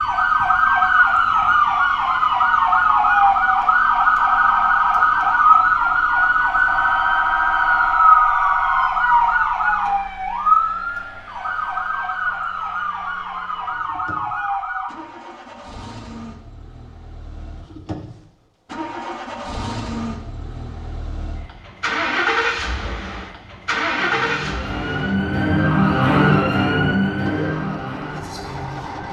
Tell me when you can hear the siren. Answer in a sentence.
You can hear the siren from 0.0 to 14.9 s and from 23.9 to 29.0 s.